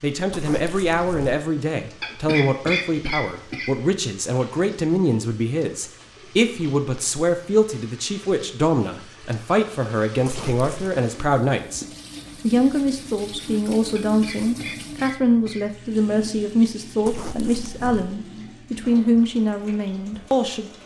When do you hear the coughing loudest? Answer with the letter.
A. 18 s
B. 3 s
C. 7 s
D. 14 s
B.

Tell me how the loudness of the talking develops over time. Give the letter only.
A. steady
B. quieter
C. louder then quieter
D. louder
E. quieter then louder
A.